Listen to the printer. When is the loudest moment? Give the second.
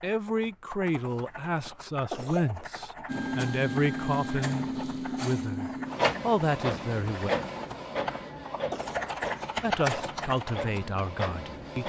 6 s.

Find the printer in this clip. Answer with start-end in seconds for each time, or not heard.
3.0-11.8.